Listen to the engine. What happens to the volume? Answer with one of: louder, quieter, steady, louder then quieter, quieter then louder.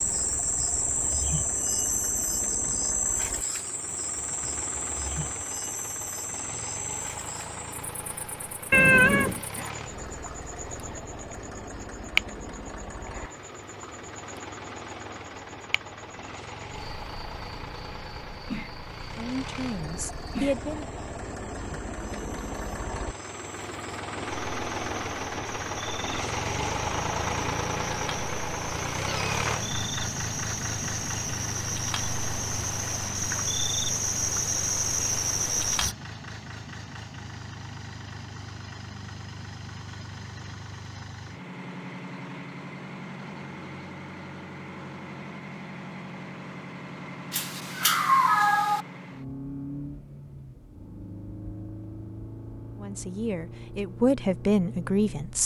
louder then quieter.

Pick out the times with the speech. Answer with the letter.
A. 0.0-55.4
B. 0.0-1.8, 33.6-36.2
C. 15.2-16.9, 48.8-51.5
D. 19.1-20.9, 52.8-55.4
D.